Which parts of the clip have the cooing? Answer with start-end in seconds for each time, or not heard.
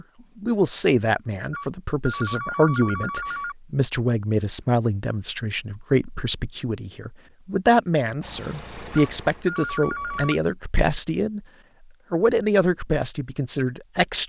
not heard.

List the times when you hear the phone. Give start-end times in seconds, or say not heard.
1.5-3.5, 8.9-10.4.